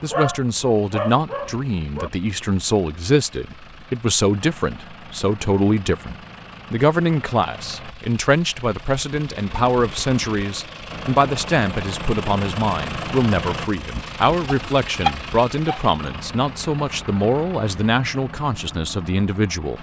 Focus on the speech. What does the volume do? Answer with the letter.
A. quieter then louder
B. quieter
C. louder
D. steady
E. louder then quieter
D.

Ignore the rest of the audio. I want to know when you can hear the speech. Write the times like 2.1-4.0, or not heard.
0.0-19.7.